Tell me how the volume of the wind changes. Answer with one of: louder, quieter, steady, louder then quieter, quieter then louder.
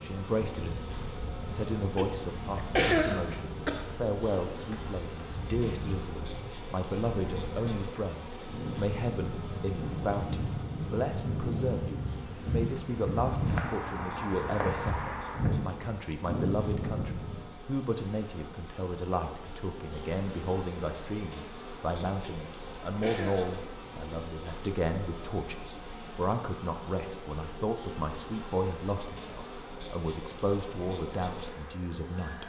louder.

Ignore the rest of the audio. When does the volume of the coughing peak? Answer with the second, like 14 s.
3 s.